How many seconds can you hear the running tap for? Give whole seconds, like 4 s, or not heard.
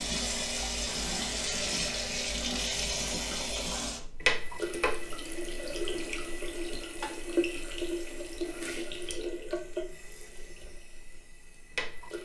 12 s.